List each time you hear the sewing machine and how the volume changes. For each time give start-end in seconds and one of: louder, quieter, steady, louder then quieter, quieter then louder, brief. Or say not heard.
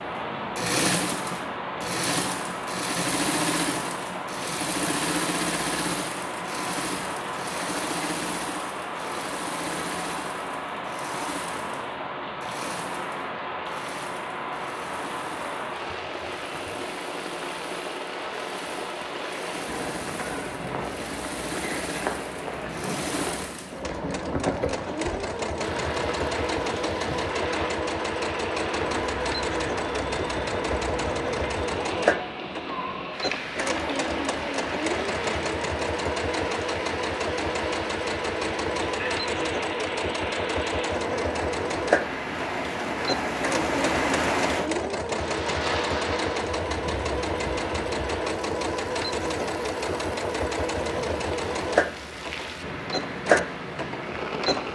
0.0-54.7 quieter then louder.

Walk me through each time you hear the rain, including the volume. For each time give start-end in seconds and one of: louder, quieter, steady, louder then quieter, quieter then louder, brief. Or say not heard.
0.0-54.7 steady.